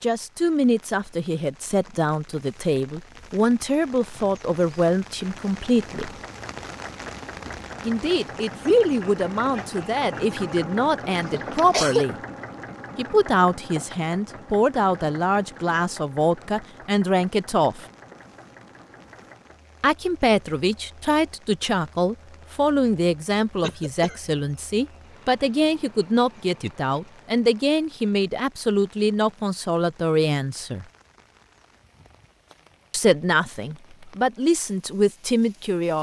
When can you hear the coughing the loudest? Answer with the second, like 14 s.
12 s.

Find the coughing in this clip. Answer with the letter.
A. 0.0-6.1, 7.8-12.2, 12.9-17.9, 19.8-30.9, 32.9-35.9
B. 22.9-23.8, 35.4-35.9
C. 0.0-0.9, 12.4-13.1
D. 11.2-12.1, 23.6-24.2
D.